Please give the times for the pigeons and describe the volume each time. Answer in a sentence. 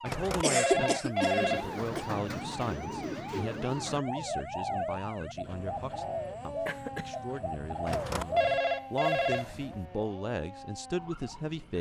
You can hear the pigeons from 1.4 to 8.6 s, at a steady volume.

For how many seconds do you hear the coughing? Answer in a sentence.
The coughing can be heard for 2 seconds in total.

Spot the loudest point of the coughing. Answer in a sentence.
The volume of the coughing peaks at 1 second.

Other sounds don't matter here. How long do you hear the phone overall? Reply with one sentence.
The phone can be heard for 4 seconds in total.